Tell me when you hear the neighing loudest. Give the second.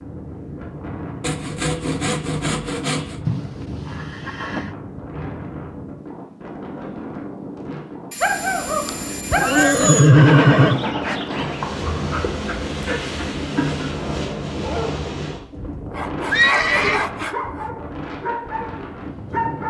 10 s.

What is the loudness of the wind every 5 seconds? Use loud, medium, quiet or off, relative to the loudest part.
medium, medium, loud, medium.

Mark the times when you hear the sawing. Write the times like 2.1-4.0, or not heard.
1.2-3.2, 8.1-10.1, 15.9-17.7.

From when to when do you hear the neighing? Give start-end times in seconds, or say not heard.
3.2-4.8, 8.8-10.8, 16.3-17.1.